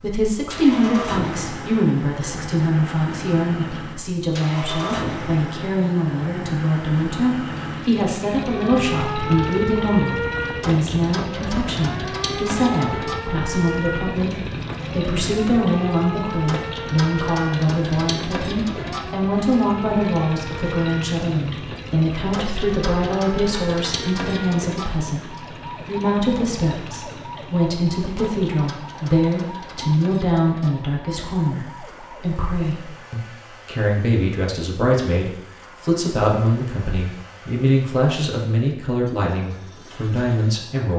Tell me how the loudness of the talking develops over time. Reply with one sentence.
The volume of the talking stays about the same.